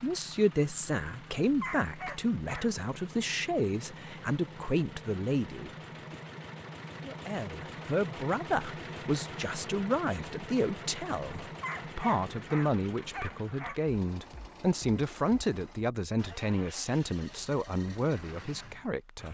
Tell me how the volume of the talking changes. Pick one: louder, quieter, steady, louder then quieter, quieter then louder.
steady.